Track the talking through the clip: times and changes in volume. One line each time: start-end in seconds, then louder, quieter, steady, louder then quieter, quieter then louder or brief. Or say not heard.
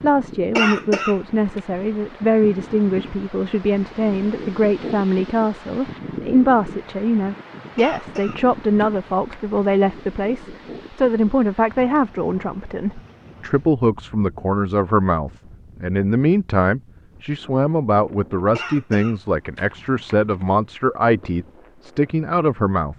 0.0-22.9 steady.